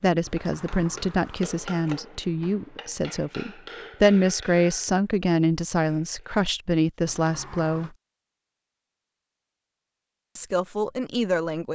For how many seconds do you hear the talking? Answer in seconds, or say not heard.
9 s.